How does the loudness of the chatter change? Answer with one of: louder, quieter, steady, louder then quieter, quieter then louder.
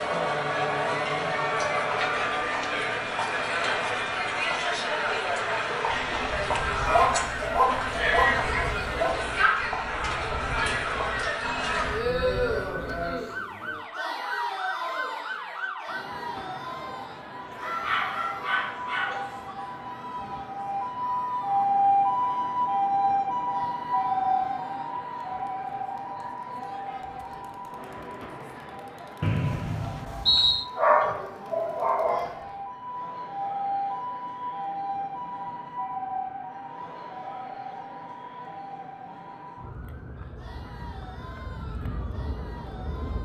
quieter.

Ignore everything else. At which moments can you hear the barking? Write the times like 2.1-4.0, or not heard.
6.8-9.2, 17.6-19.6, 30.8-32.3.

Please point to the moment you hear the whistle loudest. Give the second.
30 s.